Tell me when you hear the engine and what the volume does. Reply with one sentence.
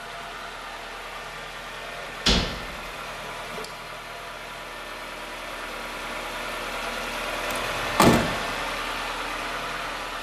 You can hear the engine from 0.0 to 10.1 s, getting louder.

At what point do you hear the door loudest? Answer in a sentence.
The volume of the door peaks at 8 seconds.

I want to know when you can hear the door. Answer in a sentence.
The door can be heard from 2.2 to 2.8 s and from 7.5 to 8.4 s.